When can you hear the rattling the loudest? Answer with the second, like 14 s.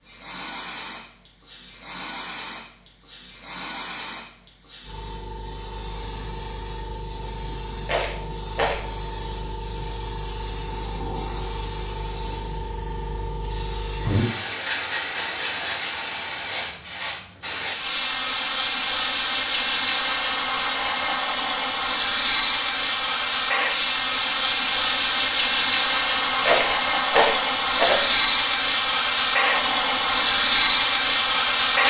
27 s.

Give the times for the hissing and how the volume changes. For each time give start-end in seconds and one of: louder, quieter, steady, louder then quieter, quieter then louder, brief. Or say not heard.
0.0-31.8 louder.